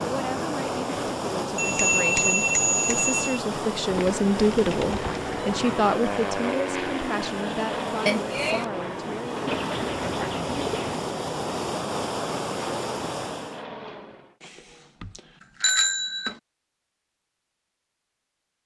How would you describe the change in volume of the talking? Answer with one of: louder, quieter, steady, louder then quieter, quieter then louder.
louder then quieter.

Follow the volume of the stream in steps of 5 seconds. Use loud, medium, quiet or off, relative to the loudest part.
loud, medium, loud, off.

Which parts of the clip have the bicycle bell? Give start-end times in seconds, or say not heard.
1.6-3.4, 8.1-8.7, 14.4-16.4.